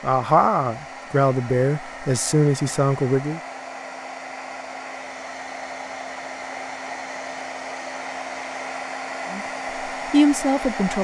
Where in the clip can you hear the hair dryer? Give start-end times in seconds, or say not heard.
0.0-11.0.